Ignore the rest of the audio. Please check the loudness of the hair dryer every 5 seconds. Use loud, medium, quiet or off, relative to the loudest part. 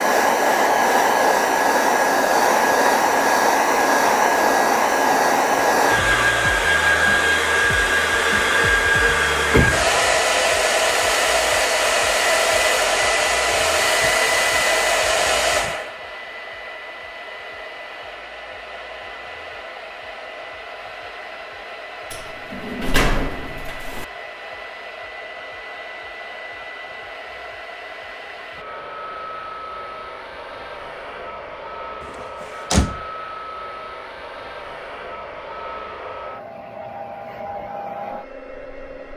loud, loud, loud, medium, quiet, quiet, quiet, quiet.